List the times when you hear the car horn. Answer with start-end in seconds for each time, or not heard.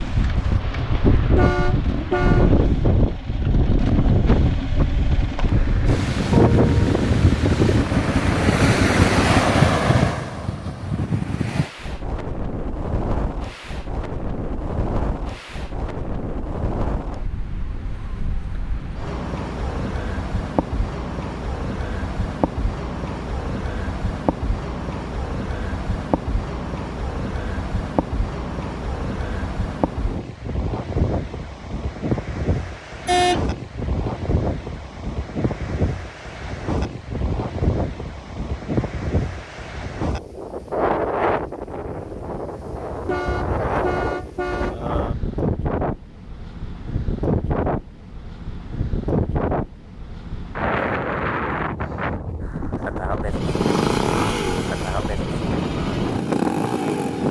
1.4-2.5, 33.0-33.5, 43.0-44.8.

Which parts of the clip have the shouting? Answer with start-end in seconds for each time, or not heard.
not heard.